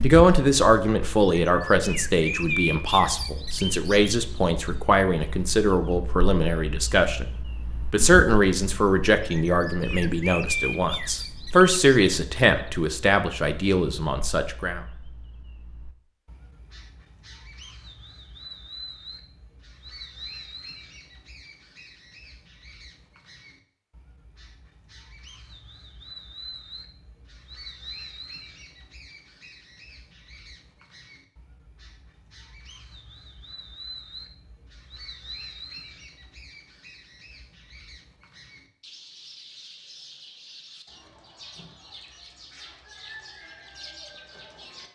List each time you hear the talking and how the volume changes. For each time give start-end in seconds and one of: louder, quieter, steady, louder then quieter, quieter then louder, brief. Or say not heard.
0.0-14.8 steady.